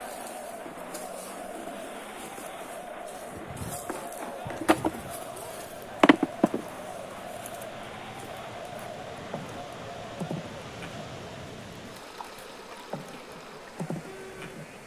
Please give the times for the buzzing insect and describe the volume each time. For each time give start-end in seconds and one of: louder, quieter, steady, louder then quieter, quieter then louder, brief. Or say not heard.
0.0-14.8 louder then quieter.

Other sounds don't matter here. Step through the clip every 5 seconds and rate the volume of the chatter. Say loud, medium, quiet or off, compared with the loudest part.
loud, loud, medium.